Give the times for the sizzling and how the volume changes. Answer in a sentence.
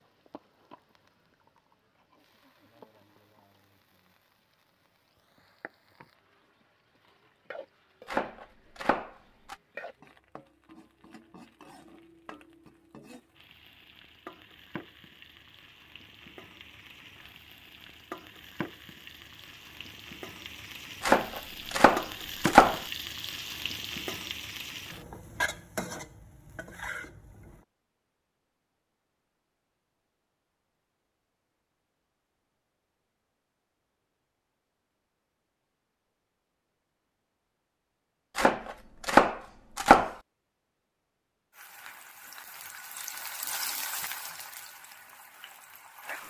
The sizzling can be heard from 0.0 to 27.6 s, getting louder; and from 41.5 to 46.2 s, getting louder then quieter.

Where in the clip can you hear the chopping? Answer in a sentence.
The chopping can be heard from 8.1 to 9.6 s, from 21.0 to 22.8 s and from 38.4 to 40.1 s.